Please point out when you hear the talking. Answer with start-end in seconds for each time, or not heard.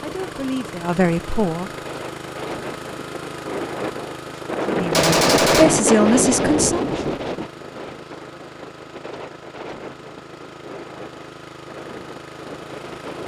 0.0-1.7, 4.7-6.8.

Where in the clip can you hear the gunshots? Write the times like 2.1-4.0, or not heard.
4.9-6.0.